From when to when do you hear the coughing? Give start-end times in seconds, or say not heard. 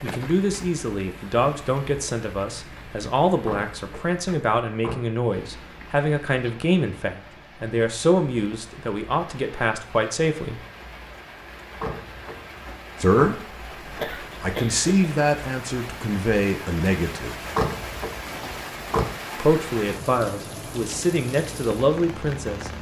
14.0-15.1.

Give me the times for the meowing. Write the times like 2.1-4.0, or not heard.
not heard.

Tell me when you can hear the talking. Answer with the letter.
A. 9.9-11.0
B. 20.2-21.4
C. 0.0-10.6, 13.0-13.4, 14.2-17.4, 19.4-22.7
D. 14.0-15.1
C.